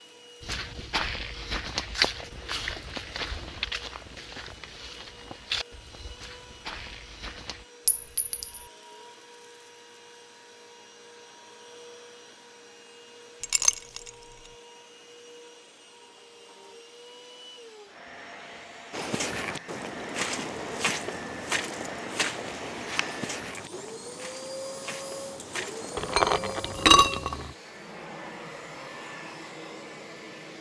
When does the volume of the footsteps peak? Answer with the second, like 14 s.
2 s.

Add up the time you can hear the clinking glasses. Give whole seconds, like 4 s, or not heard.
3 s.